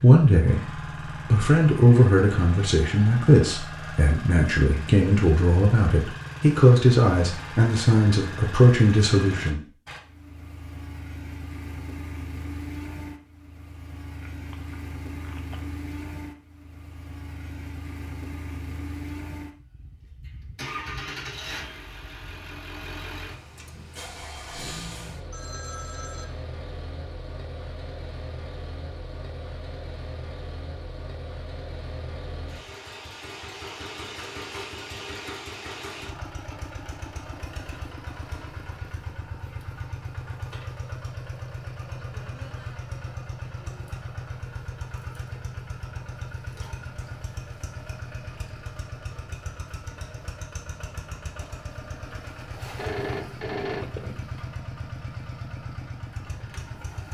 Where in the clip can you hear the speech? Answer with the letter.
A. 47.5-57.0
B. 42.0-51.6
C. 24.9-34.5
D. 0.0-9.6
D.